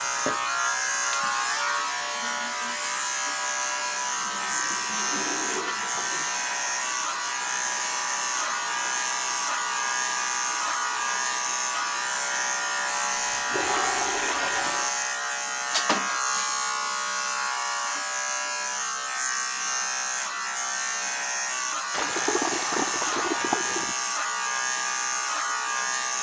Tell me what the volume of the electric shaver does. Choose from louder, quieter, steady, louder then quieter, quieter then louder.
steady.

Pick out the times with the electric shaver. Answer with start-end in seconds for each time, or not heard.
0.0-26.1.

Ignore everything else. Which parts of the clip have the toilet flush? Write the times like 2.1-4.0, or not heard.
4.2-6.3, 13.1-14.9, 21.9-23.9.